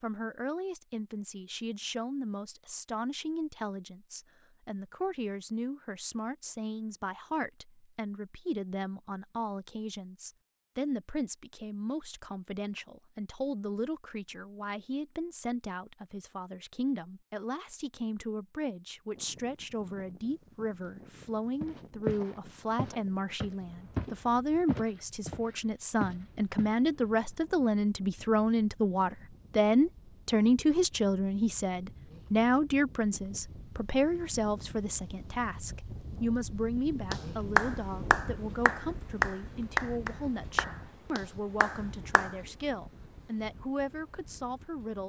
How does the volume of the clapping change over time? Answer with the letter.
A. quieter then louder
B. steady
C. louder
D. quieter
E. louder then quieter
D.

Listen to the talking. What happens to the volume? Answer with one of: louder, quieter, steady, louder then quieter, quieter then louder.
louder then quieter.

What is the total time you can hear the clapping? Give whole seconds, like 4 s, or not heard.
5 s.